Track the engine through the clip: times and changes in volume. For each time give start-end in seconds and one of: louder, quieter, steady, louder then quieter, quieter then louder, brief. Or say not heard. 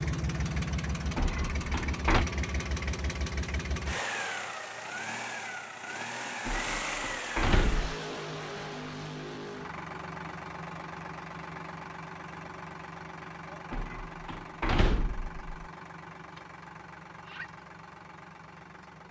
0.0-19.0 quieter.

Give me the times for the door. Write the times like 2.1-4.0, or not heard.
1.1-2.2, 6.5-8.0, 13.7-15.4.